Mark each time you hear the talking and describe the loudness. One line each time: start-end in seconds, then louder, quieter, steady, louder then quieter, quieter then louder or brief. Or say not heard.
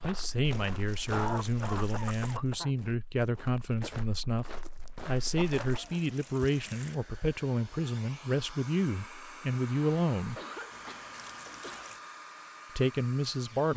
0.0-10.4 steady
12.8-13.7 brief.